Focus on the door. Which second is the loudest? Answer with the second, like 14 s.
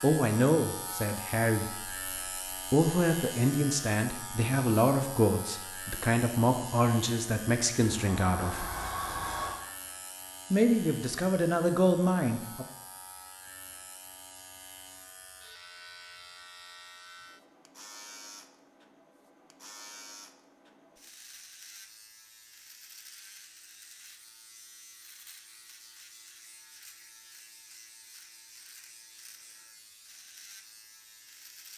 9 s.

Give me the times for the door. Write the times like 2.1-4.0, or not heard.
8.0-9.6.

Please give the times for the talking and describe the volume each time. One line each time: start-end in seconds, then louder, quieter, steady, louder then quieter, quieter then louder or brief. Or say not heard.
0.0-2.1 brief
2.7-8.7 steady
10.5-12.7 brief.